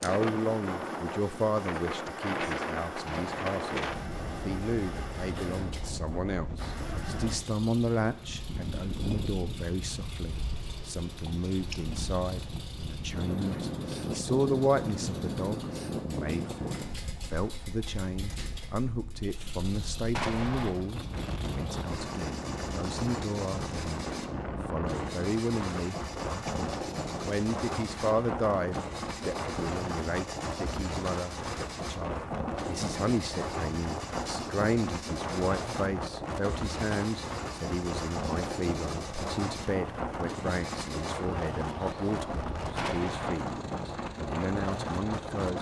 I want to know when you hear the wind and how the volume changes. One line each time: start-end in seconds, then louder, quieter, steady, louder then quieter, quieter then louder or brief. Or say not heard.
0.0-45.5 steady.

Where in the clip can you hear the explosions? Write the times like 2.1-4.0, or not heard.
3.0-3.5, 20.1-20.8, 42.8-43.4.